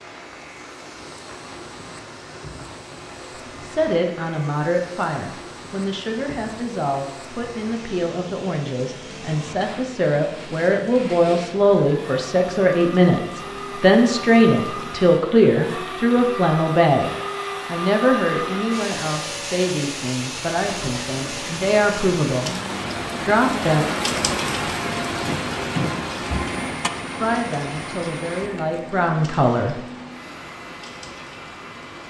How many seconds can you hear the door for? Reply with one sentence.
The door can be heard for 2 seconds in total.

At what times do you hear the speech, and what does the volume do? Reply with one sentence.
You can hear the speech from 3.6 to 22.5 s, getting louder then quieter; briefly from 23.2 to 23.9 s; and briefly from 27.1 to 29.8 s.